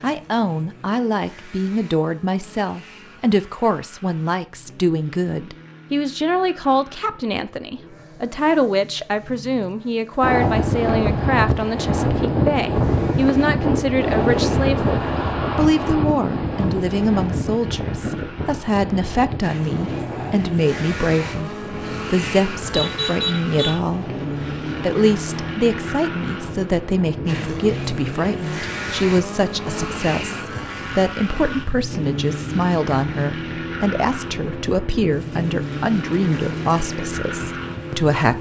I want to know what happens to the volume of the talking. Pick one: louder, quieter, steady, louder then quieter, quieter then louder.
steady.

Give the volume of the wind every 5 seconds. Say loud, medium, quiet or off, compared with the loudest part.
off, off, loud, medium, quiet, quiet, quiet, quiet.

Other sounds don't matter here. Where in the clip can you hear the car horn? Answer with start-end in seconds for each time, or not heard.
22.7-23.8.